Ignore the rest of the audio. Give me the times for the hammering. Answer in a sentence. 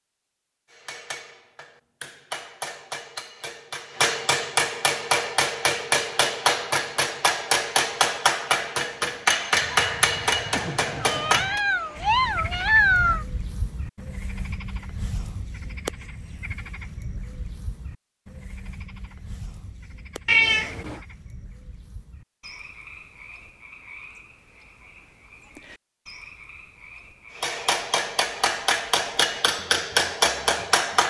The hammering can be heard from 0.7 to 11.6 s and from 27.4 to 31.0 s.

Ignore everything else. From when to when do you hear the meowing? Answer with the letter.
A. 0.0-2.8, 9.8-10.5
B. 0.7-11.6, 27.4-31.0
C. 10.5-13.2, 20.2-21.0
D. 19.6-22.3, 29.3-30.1
C.